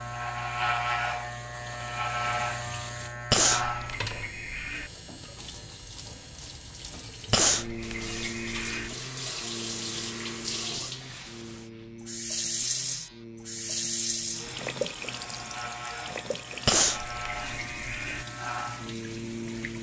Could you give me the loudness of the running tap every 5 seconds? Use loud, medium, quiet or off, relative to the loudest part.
medium, medium, loud, medium.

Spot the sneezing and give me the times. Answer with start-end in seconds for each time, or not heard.
3.3-4.9, 7.3-8.9, 16.6-18.2.